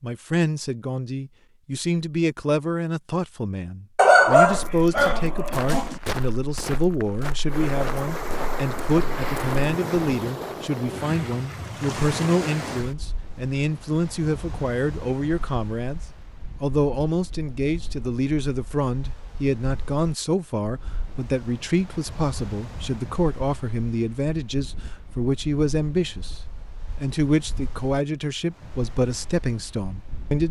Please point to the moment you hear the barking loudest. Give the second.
4 s.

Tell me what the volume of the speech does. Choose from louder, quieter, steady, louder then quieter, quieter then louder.
steady.